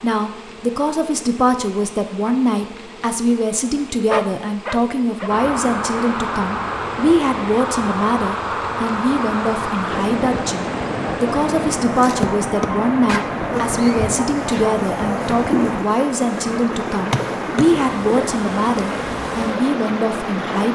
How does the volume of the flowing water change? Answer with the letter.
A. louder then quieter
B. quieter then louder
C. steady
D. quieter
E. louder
C.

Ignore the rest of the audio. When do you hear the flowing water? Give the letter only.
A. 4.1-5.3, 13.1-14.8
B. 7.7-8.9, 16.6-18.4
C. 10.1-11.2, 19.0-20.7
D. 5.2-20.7
D.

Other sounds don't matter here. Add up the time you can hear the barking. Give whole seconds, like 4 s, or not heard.
3 s.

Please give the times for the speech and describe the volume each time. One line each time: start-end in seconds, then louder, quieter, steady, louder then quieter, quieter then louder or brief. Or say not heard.
0.0-20.7 steady.